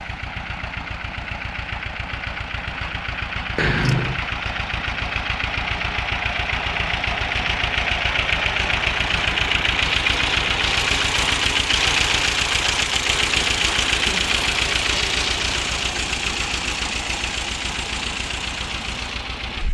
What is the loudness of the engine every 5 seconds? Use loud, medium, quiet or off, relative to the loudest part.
medium, loud, loud, medium.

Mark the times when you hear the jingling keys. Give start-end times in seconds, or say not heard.
3.5-4.2.